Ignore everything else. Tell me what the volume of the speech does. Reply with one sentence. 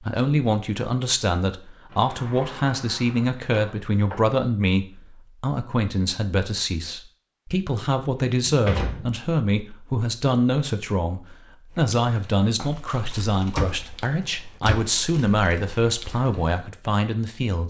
The loudness of the speech stays about the same.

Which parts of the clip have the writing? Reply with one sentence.
You can't hear the writing here.